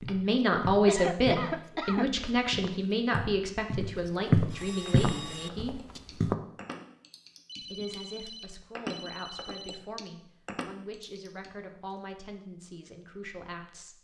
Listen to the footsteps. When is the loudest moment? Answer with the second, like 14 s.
4 s.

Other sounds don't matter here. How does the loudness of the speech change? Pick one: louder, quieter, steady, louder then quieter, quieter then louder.
quieter.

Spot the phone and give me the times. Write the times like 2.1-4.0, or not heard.
4.5-5.5, 7.5-9.8.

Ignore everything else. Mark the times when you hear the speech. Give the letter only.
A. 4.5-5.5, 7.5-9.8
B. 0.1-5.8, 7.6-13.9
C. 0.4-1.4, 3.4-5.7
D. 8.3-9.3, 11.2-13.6
B.